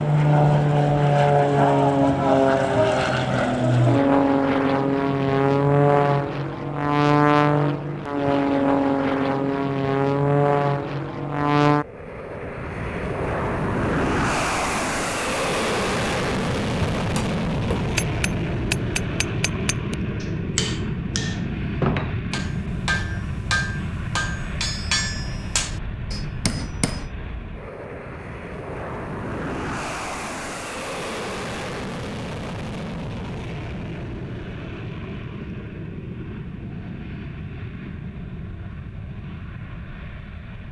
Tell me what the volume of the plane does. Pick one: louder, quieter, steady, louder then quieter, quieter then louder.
quieter.